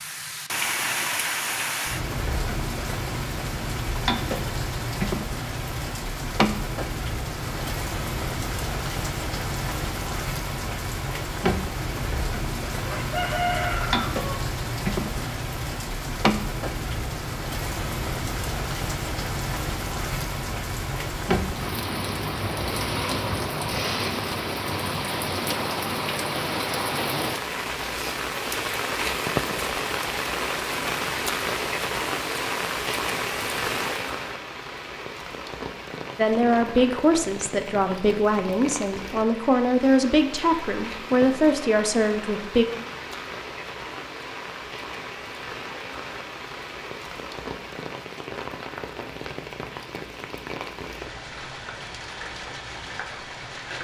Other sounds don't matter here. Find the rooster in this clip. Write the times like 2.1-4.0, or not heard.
12.8-14.2.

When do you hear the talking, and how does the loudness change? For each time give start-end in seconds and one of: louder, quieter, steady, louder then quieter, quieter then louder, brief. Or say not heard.
36.1-42.6 steady.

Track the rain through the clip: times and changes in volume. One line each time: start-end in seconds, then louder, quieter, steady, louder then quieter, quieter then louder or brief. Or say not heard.
0.0-53.7 quieter.